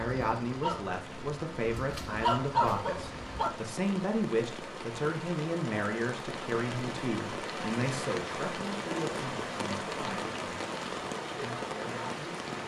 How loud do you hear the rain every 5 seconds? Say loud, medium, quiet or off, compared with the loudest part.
medium, loud, loud.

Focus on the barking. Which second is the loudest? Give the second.
2 s.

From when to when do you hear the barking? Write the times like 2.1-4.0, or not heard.
0.0-3.5.